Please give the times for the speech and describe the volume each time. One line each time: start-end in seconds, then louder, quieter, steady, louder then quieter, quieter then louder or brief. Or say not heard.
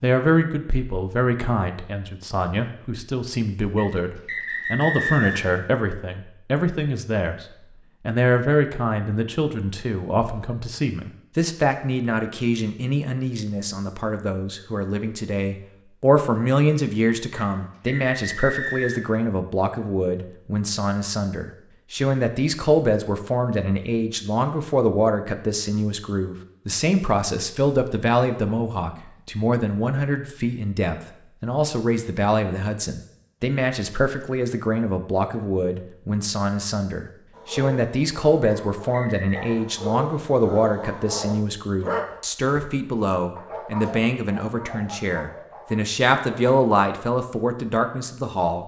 0.0-48.6 steady.